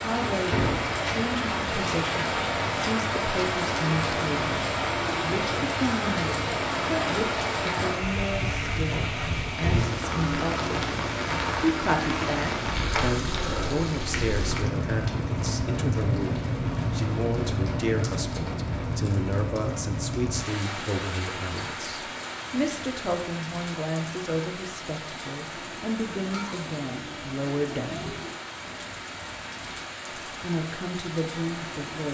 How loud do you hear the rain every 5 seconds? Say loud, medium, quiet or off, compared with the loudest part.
loud, loud, loud, loud, medium, medium, medium.